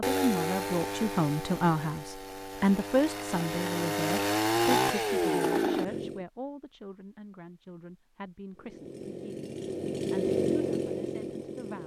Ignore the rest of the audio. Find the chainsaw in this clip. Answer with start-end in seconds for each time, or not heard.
0.0-6.2, 8.6-11.8.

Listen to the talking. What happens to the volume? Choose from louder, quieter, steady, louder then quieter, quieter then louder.
quieter.